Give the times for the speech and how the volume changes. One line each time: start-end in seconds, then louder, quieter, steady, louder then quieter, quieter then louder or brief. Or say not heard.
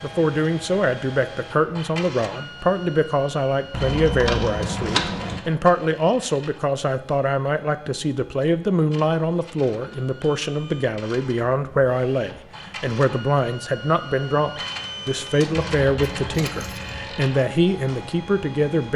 0.0-18.9 steady.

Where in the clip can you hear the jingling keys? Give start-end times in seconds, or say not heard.
3.7-5.4, 15.7-17.1.